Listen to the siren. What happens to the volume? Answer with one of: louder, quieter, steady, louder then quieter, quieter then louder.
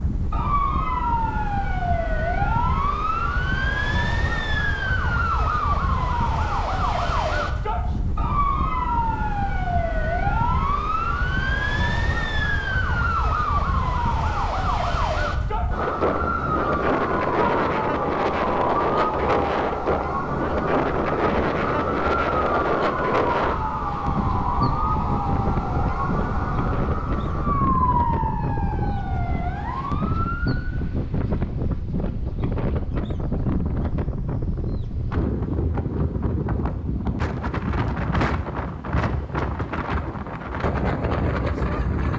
steady.